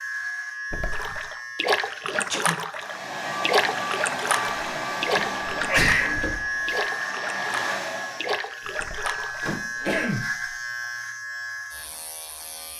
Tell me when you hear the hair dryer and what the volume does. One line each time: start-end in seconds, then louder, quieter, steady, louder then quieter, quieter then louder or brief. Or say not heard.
2.8-8.3 quieter then louder.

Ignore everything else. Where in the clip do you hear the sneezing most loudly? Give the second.
6 s.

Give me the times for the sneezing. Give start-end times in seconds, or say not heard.
2.0-2.5, 5.5-6.8, 9.8-10.2.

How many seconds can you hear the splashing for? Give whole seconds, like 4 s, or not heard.
9 s.